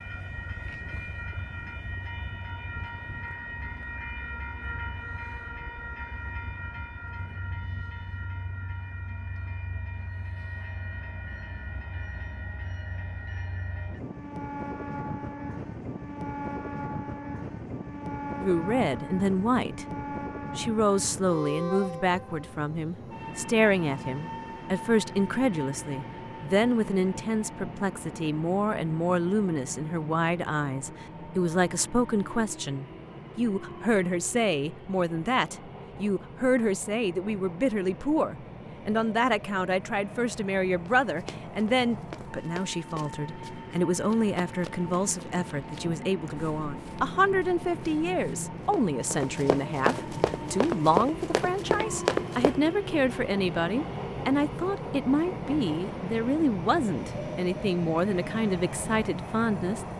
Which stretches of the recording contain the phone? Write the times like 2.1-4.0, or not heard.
not heard.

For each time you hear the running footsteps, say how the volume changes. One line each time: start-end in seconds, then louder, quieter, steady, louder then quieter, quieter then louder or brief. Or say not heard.
41.0-52.6 quieter then louder.